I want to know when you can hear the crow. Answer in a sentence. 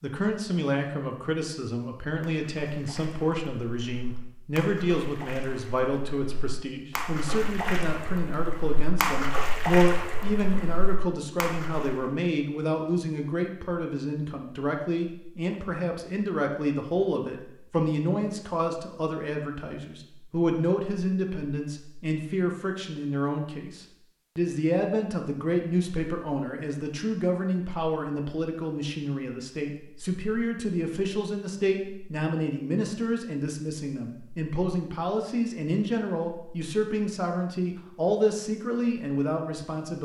The crow can't be heard in this clip.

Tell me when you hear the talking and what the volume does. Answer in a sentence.
The talking can be heard from 0.0 to 40.0 s, at a steady volume.